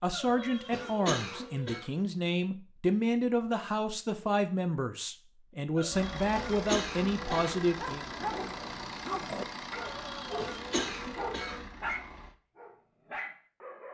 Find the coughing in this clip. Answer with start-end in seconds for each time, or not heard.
0.1-1.9, 5.8-7.6, 9.8-11.7.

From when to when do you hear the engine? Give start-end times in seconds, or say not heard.
5.9-12.3.